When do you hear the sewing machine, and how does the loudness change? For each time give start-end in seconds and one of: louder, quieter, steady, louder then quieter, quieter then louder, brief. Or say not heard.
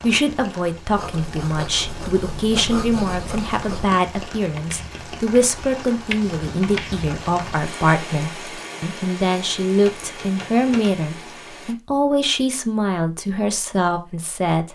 not heard.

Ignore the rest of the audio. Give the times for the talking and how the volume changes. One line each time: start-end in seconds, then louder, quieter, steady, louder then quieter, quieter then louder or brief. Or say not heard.
0.0-14.6 steady.